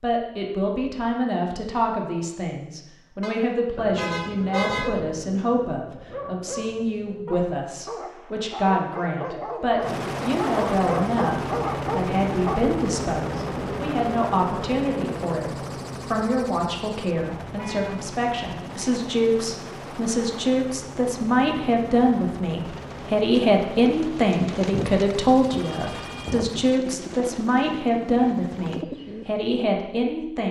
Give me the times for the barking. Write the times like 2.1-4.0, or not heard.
3.8-12.8.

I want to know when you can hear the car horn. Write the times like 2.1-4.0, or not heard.
3.2-5.0, 17.6-18.0, 25.6-26.4.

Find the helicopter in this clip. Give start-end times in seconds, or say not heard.
9.8-28.9.